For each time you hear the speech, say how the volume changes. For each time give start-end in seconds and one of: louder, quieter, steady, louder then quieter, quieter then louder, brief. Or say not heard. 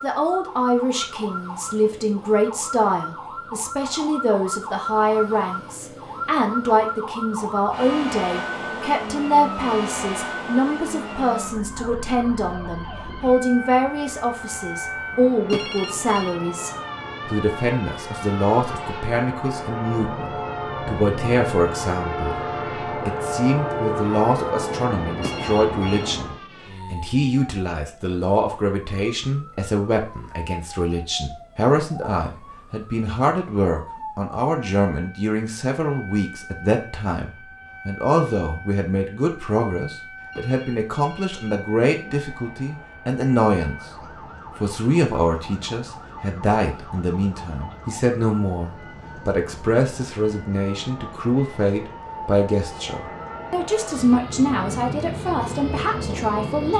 0.0-43.8 steady
44.5-56.7 steady.